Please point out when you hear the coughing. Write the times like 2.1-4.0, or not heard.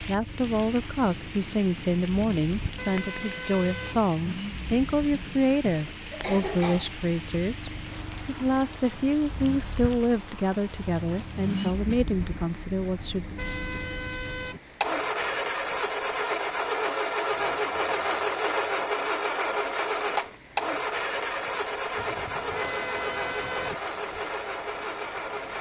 5.7-7.0.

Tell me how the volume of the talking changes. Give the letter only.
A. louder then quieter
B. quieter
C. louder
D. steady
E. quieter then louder
D.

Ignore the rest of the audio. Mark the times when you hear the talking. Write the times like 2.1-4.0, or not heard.
0.0-13.3.